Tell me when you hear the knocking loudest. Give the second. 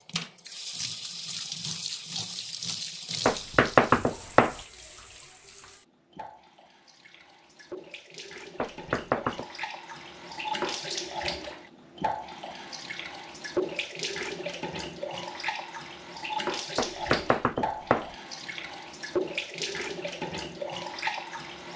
4 s.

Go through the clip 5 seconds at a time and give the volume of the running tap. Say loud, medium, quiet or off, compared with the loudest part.
loud, medium, loud, loud, loud.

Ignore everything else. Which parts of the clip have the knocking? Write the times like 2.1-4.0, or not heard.
3.2-4.5, 8.6-9.4, 16.8-18.1.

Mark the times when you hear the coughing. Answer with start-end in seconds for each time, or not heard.
not heard.